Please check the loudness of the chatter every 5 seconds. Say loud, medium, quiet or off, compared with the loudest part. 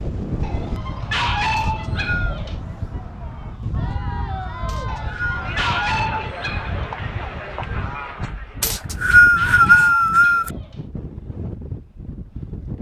loud, loud, off.